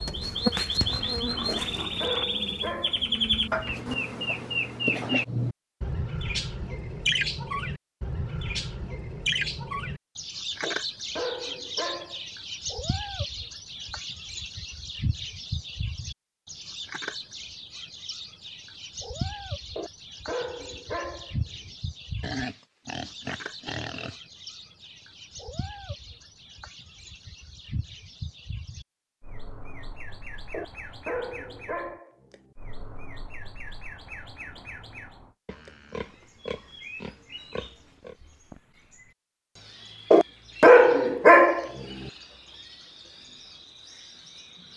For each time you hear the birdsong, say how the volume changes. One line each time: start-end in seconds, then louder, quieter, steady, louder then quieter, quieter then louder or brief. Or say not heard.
0.0-44.7 quieter.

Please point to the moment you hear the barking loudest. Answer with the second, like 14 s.
41 s.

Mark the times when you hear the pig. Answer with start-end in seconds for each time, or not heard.
0.3-2.2, 22.2-24.2, 35.5-38.1.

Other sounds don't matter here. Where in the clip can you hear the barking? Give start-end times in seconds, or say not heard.
1.4-3.2, 10.6-12.2, 19.8-21.4, 30.5-32.2, 40.1-41.7.